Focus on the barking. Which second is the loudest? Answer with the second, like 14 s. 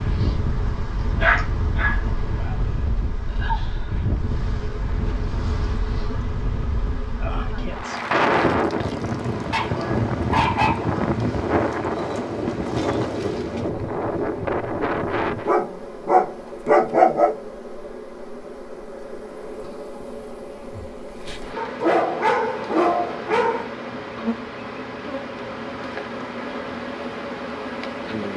17 s.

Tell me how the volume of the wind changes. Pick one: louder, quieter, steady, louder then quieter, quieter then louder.
louder.